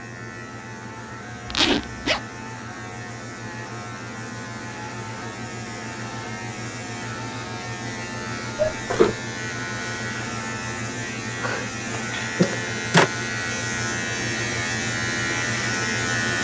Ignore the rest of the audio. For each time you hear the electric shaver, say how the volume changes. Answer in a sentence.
The electric shaver can be heard from 0.0 to 16.3 s, getting louder.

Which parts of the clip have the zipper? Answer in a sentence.
The zipper can be heard from 1.5 to 2.2 s, from 8.6 to 9.2 s and from 12.1 to 13.1 s.